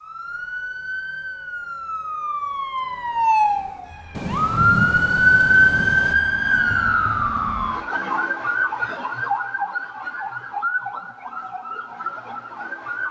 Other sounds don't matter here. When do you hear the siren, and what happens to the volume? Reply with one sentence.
You can hear the siren from 0.0 to 13.0 s, getting louder then quieter.